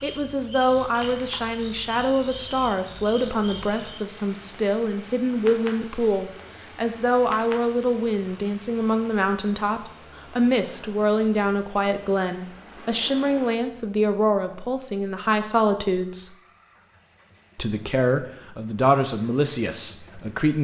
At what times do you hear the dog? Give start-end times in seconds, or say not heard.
not heard.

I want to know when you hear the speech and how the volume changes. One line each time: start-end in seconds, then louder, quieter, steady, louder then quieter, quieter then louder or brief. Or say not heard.
0.0-16.4 steady
17.6-20.5 brief.